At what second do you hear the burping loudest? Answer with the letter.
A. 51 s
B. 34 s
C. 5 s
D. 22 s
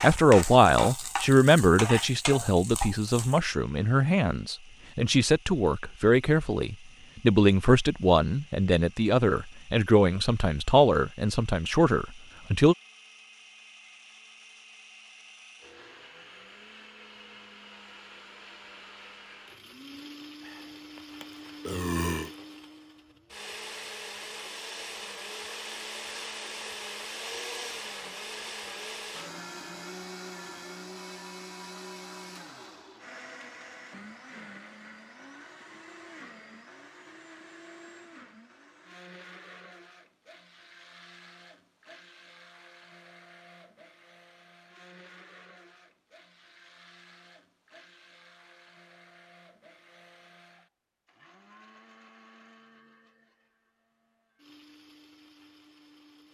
D.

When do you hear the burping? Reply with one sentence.
You can hear the burping from 20.4 to 22.4 s.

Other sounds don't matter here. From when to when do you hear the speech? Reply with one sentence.
You can hear the speech from 0.0 to 12.8 s.